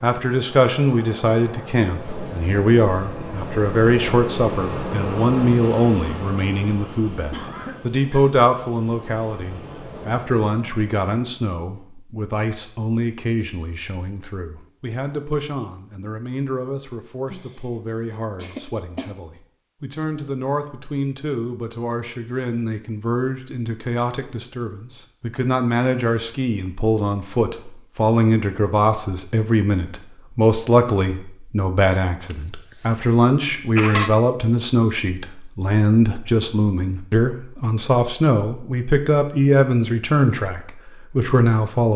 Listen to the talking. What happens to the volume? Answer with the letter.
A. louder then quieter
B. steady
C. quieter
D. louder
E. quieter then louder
E.